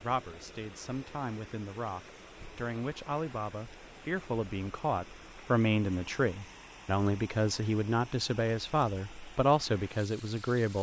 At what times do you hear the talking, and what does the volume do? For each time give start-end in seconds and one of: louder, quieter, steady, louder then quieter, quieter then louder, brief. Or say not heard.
0.0-10.7 louder.